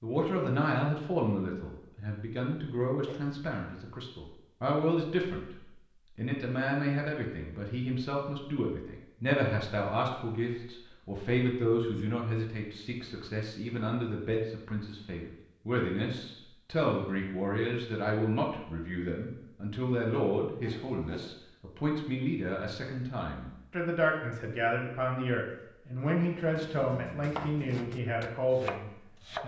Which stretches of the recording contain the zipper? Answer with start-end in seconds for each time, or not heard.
not heard.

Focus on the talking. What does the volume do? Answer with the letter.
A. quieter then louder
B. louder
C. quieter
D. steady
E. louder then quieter
D.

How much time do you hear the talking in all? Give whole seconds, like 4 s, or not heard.
29 s.